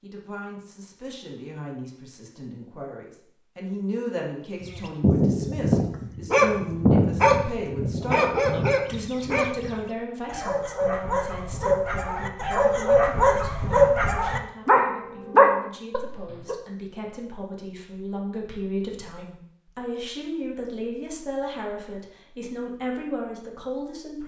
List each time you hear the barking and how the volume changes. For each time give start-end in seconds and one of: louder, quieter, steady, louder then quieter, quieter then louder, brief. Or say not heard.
4.6-16.6 quieter then louder.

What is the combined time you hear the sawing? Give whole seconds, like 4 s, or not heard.
not heard.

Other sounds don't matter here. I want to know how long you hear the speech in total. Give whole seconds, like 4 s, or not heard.
24 s.